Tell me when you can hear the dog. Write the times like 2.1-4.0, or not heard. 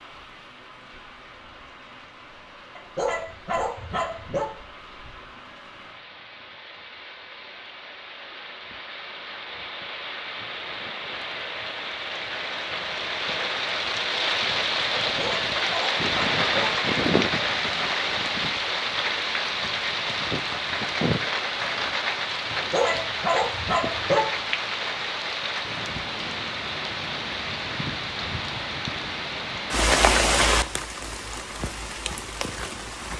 2.8-4.5, 15.0-16.8, 22.5-24.4.